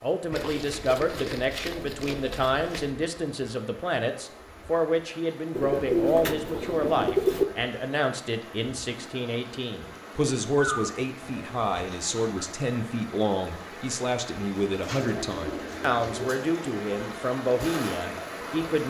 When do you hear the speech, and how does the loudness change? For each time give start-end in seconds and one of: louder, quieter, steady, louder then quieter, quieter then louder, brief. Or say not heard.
0.0-18.8 steady.